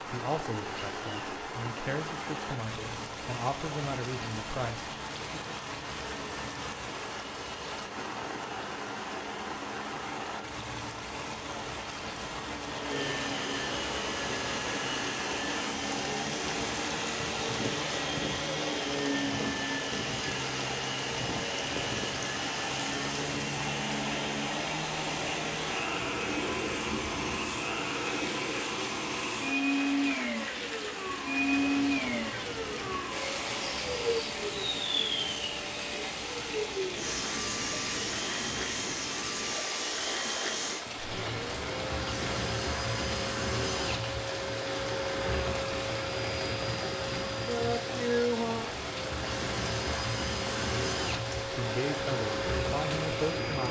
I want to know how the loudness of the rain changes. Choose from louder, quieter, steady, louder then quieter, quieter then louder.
steady.